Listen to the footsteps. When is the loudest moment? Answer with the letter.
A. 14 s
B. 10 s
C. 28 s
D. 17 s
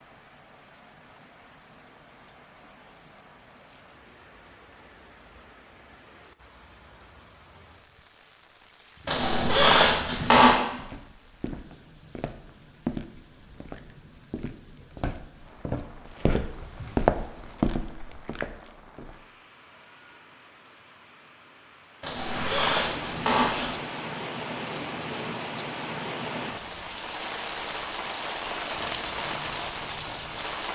D.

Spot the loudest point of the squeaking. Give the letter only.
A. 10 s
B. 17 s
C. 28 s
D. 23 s
A.